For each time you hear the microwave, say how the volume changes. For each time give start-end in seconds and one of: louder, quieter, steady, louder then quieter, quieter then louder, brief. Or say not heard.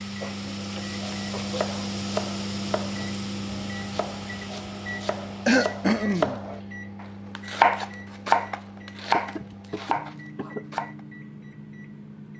0.0-12.3 quieter.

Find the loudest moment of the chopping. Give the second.
8 s.